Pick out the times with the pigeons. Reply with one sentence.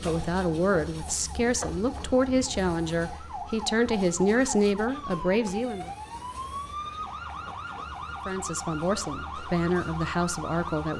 You can't hear the pigeons here.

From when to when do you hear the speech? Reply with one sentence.
You can hear the speech from 0.0 to 5.9 s and from 8.2 to 10.9 s.